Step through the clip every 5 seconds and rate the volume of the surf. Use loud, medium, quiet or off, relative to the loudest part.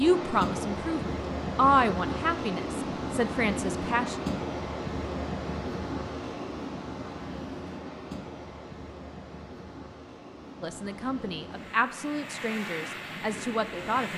loud, medium, medium.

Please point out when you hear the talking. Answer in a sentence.
You can hear the talking from 0.0 to 4.2 s and from 10.6 to 14.1 s.